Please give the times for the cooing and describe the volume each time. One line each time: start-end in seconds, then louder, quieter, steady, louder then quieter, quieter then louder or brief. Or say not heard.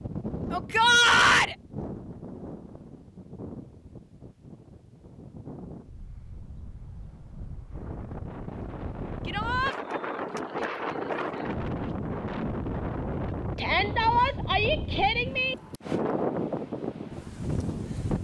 not heard.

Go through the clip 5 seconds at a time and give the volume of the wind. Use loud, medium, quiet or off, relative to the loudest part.
medium, medium, loud, loud.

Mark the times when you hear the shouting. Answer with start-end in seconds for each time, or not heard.
0.5-1.6, 9.2-9.8, 13.6-15.6.